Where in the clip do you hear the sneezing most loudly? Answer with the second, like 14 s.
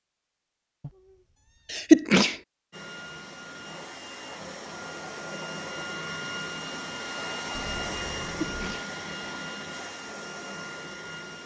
2 s.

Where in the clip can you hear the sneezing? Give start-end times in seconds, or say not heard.
1.7-2.4, 8.2-8.8.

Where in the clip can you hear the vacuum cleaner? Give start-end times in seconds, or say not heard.
2.7-11.4.